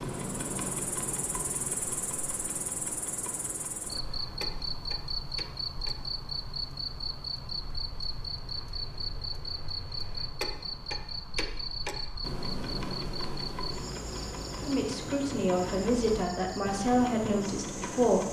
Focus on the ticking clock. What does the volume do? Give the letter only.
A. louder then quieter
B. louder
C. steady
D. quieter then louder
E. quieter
D.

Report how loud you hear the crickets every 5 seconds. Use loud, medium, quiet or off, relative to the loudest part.
loud, loud, loud, medium.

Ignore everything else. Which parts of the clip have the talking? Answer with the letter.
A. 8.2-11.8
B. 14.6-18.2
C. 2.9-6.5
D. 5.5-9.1
B.